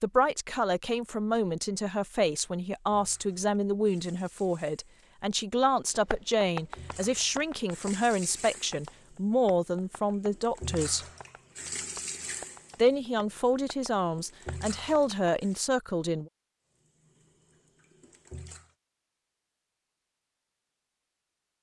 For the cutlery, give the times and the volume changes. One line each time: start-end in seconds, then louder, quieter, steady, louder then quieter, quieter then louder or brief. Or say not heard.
not heard.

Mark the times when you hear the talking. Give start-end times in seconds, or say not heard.
0.0-11.1, 12.8-16.3.